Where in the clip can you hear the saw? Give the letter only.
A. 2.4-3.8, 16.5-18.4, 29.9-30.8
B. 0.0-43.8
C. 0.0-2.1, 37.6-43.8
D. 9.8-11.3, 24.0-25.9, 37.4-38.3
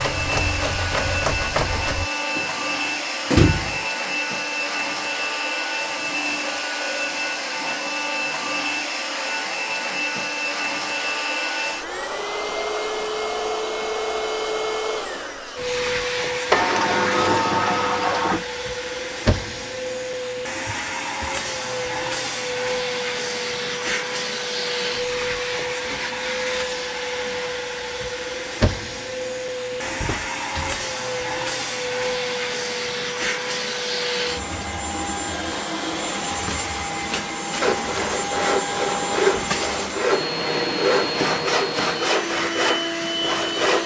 C.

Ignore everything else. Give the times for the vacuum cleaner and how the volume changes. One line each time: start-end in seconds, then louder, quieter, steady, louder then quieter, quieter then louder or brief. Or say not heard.
0.0-43.8 steady.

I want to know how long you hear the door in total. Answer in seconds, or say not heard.
4 s.